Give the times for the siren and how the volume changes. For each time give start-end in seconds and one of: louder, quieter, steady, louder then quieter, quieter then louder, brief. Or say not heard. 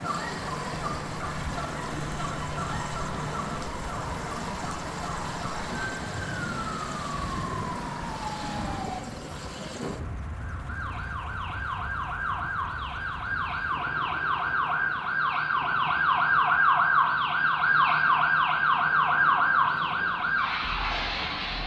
0.0-21.6 louder.